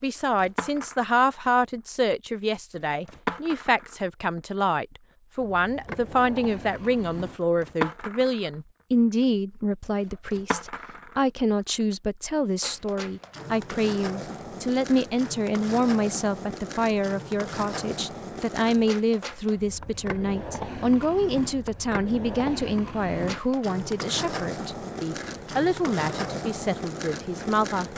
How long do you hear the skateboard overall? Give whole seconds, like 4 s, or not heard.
28 s.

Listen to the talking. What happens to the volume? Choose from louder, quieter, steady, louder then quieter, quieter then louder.
steady.